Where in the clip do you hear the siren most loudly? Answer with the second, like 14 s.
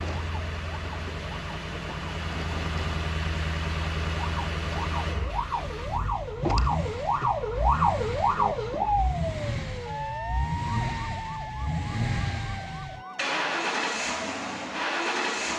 8 s.